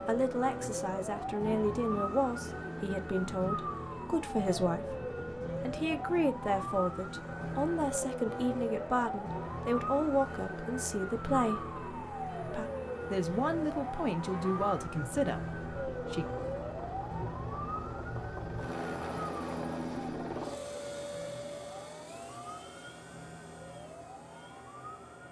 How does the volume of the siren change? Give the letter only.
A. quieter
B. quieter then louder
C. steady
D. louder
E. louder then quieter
A.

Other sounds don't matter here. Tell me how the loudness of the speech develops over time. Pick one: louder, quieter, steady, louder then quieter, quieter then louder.
steady.